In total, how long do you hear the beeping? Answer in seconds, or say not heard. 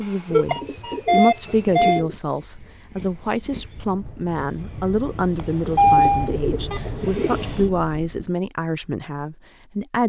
3 s.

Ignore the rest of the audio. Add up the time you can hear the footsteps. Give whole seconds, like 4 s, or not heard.
not heard.